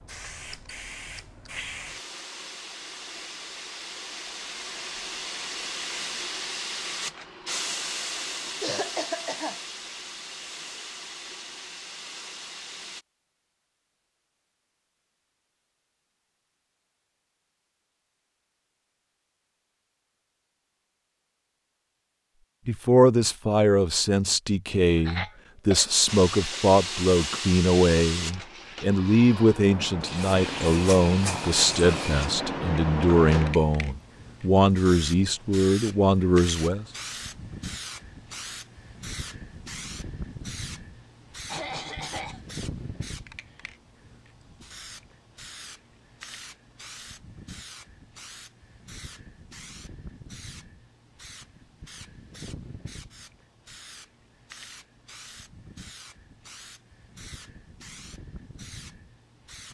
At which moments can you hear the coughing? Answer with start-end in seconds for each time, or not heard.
8.6-9.6, 25.1-26.6, 41.5-42.4.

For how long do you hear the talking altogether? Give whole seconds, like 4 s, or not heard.
14 s.